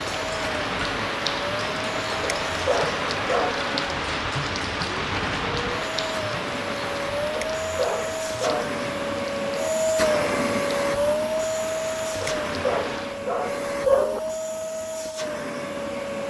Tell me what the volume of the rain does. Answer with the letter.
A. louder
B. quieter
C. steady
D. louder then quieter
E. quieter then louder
B.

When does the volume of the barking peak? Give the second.
14 s.